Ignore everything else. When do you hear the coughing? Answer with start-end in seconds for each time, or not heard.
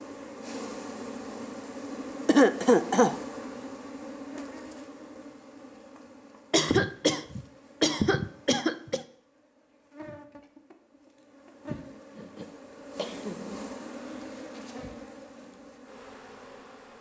2.2-3.1, 6.5-9.0, 12.2-13.4.